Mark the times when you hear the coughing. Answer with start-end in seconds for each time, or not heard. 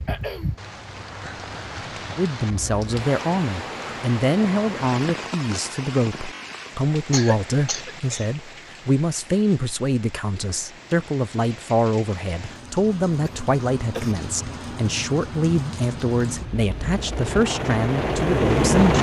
0.1-0.6, 7.1-8.2, 13.2-14.2.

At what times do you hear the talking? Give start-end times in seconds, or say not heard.
2.1-18.9.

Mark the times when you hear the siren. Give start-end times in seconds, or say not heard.
not heard.